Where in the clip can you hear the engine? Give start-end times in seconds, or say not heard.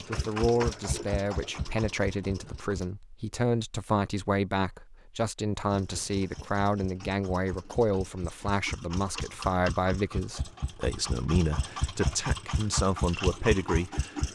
0.0-2.9, 5.7-14.2.